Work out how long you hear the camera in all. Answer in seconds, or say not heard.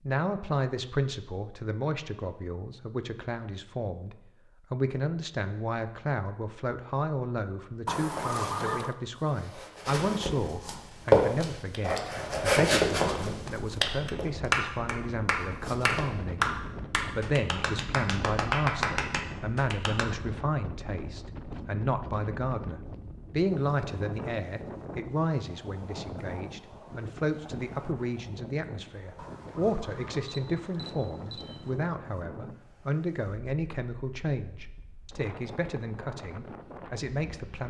4 s.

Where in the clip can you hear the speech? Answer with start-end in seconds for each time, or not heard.
0.0-16.4, 17.1-37.6.